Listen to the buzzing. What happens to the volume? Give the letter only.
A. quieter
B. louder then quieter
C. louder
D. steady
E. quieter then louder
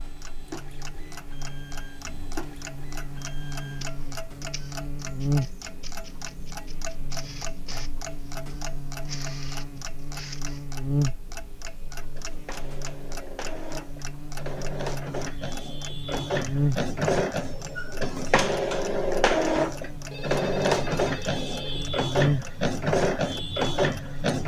C.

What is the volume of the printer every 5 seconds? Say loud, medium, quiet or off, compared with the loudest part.
quiet, quiet, quiet, loud, loud.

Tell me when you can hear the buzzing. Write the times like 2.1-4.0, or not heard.
0.0-24.4.